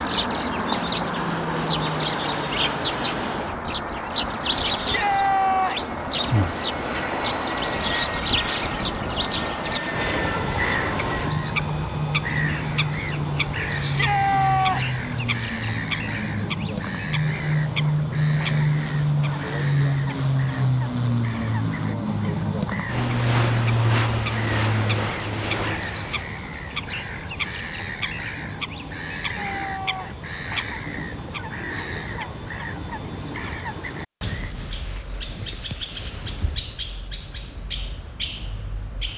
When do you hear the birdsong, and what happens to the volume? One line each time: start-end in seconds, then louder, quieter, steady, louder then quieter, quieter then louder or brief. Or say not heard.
0.0-39.1 quieter.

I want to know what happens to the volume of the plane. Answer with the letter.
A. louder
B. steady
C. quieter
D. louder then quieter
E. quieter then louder
A.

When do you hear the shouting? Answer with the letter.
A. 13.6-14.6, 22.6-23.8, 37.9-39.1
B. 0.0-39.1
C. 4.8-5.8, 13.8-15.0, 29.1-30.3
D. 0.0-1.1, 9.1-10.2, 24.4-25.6
C.